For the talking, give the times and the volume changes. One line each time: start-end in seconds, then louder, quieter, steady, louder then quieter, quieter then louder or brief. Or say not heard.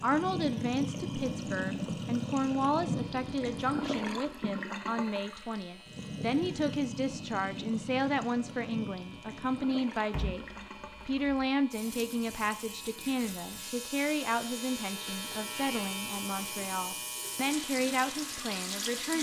0.0-19.1 steady.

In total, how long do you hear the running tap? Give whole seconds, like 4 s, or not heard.
19 s.